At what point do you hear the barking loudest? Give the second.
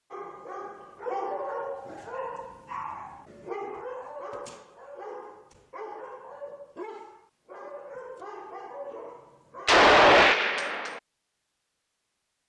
1 s.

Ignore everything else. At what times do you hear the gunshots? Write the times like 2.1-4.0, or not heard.
9.7-11.0.